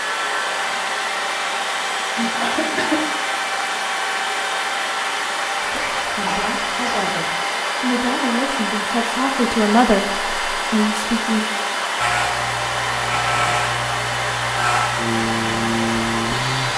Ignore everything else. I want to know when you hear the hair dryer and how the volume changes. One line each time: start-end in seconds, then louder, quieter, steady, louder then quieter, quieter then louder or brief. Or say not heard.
0.0-16.7 steady.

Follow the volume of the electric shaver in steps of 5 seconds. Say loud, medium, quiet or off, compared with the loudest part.
off, off, loud, loud.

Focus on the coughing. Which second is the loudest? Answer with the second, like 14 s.
3 s.